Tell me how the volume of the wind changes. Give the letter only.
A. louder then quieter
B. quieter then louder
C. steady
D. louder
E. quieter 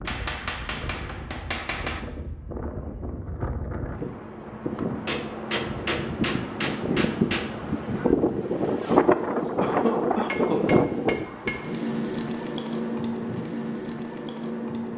A.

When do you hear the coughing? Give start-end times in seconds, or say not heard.
9.6-10.6.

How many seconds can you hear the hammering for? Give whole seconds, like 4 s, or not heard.
6 s.